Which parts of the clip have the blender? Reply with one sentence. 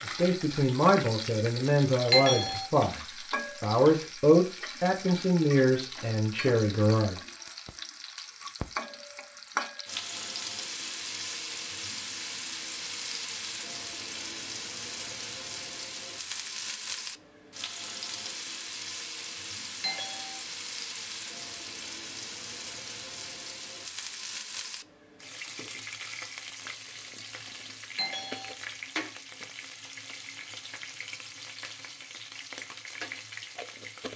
You can't hear the blender here.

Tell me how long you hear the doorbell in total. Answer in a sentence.
You can hear the doorbell for 2 seconds altogether.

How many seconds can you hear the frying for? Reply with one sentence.
The frying can be heard for 34 seconds in total.